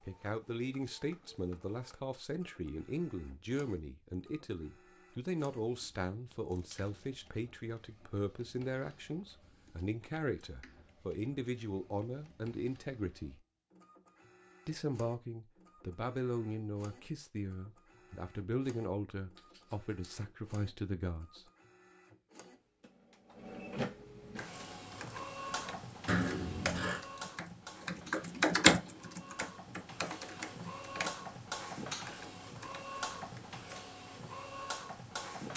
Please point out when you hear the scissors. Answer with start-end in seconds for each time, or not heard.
6.5-7.2, 19.4-20.1, 26.1-27.0.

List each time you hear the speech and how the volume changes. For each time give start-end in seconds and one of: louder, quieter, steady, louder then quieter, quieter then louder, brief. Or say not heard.
0.1-13.4 steady
14.7-21.4 steady.